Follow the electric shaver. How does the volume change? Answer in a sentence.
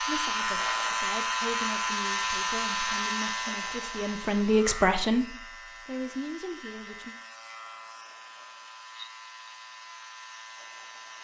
The loudness of the electric shaver goes down.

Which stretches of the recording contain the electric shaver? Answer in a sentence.
You can hear the electric shaver from 0.0 to 11.1 s.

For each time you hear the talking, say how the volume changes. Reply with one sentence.
The talking can be heard from 0.0 to 7.2 s, getting louder then quieter.